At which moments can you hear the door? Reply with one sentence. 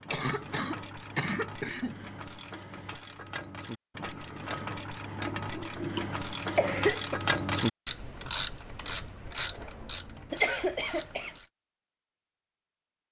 You can't hear the door here.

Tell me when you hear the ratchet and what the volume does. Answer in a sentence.
You can hear the ratchet from 0.0 to 11.5 s, getting louder then quieter.